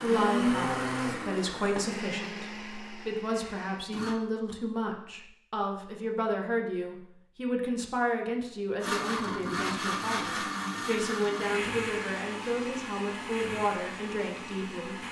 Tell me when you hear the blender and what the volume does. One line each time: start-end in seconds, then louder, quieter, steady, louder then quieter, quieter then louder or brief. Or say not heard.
0.0-4.2 quieter
8.8-15.0 quieter.